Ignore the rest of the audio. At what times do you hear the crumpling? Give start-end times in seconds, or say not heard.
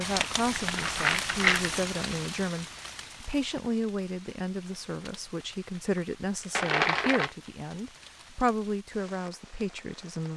0.1-1.8, 6.5-7.3.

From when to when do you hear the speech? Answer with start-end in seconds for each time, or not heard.
0.0-10.3.